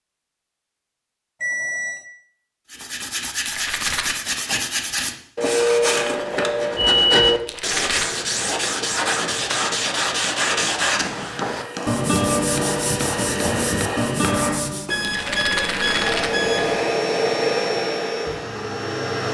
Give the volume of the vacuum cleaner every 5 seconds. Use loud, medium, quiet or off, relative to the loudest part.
off, off, medium, loud.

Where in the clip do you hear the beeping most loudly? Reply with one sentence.
The volume of the beeping peaks at 7 seconds.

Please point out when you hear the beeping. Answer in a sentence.
The beeping can be heard from 1.4 to 2.0 s, from 6.8 to 7.5 s and from 14.8 to 16.8 s.